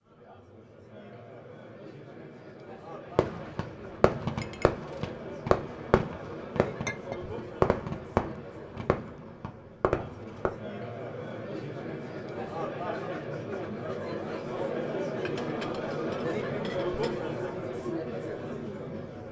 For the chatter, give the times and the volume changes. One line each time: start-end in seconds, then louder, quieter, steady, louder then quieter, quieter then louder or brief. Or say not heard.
0.0-19.2 louder.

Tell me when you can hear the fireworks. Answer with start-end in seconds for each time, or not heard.
3.1-10.6.